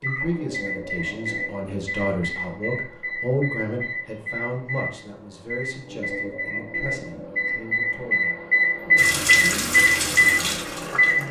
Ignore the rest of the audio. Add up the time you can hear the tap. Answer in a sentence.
You can hear the tap for 2 seconds altogether.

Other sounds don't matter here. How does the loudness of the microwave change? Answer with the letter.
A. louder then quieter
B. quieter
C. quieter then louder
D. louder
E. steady
D.